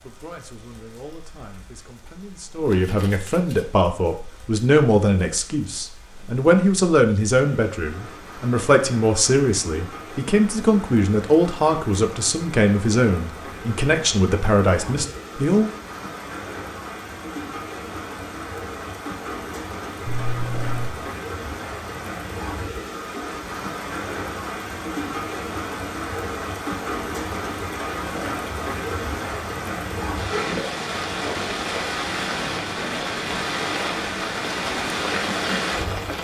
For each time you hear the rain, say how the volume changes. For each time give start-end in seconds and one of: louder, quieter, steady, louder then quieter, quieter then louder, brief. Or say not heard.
0.0-36.1 louder.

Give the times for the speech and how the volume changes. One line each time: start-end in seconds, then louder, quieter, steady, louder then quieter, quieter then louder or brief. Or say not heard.
0.0-15.7 louder.